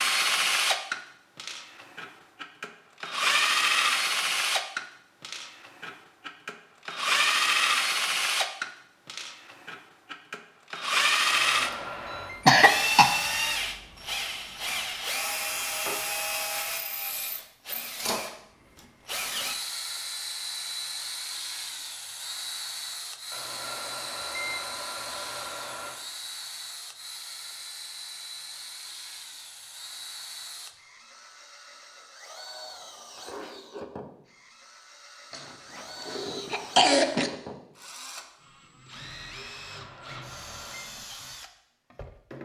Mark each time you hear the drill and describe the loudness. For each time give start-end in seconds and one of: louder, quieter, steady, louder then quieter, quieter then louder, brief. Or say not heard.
0.0-42.4 quieter.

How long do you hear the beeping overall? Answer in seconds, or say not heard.
5 s.